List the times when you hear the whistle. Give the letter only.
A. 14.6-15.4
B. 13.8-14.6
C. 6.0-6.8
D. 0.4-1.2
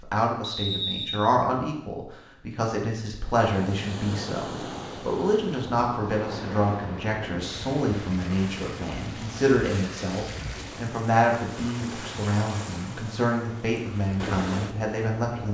D.